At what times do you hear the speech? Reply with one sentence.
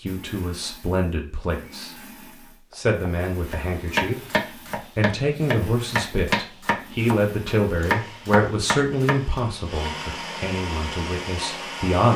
You can hear the speech from 0.0 to 1.9 s, from 2.8 to 4.2 s and from 5.0 to 12.1 s.